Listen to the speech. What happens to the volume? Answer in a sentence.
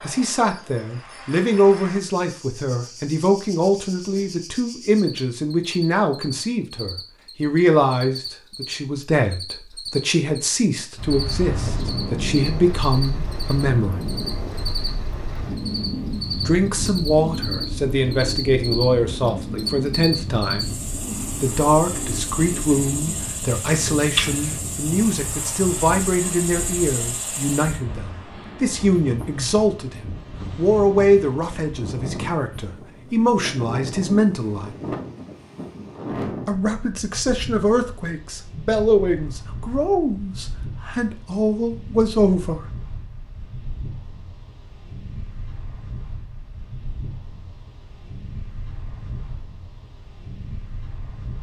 The loudness of the speech stays about the same.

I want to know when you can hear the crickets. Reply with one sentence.
You can hear the crickets from 0.0 to 27.8 s.